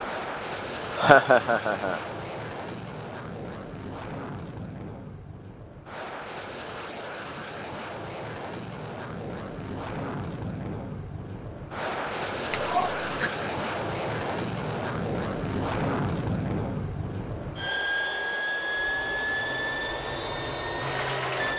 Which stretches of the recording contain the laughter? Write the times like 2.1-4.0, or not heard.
0.9-2.0, 12.5-13.3.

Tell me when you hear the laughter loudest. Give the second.
1 s.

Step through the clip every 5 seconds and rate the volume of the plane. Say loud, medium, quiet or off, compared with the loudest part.
medium, medium, loud, loud, loud.